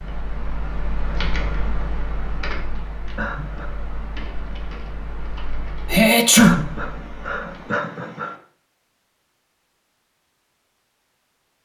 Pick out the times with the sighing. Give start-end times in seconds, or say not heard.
3.1-3.7, 6.3-8.3.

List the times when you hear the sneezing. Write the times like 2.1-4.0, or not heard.
5.9-6.6.